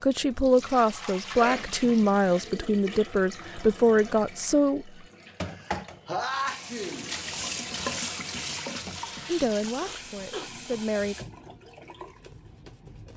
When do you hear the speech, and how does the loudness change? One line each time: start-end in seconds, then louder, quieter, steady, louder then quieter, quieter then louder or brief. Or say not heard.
0.0-4.9 steady
9.2-11.2 brief.